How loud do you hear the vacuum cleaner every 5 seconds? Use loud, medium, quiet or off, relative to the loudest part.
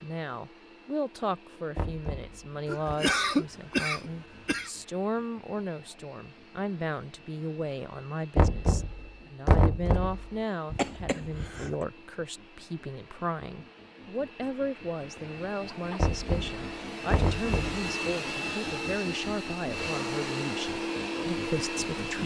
quiet, quiet, quiet, loud, loud.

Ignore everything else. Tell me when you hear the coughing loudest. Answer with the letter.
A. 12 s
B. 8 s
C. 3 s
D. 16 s
C.